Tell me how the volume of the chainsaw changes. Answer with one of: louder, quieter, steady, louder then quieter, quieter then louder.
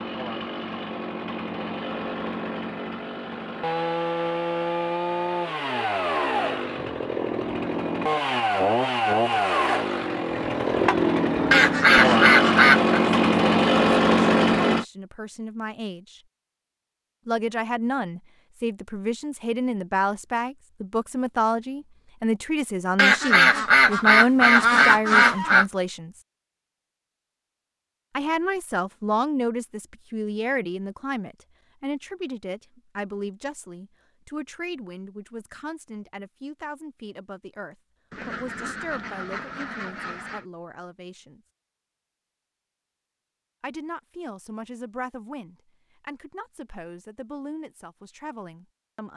louder.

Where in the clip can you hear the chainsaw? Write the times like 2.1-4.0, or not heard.
0.0-14.8.